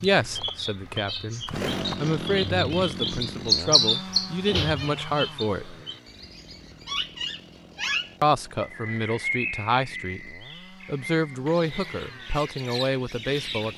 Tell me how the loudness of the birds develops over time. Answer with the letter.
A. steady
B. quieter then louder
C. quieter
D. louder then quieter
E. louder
D.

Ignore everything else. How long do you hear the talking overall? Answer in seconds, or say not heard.
11 s.